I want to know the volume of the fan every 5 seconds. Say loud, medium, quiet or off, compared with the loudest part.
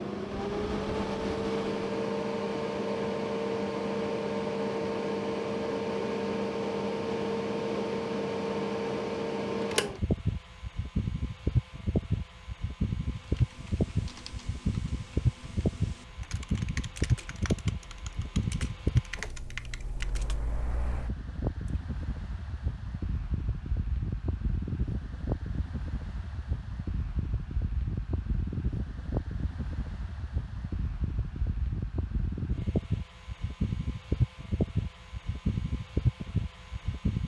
loud, loud, loud, loud, medium, medium, loud, loud.